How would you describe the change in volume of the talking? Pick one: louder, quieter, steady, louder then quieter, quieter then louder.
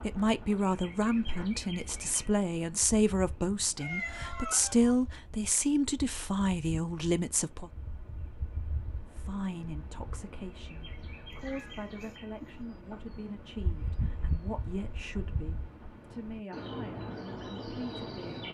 quieter.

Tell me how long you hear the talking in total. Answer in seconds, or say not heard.
17 s.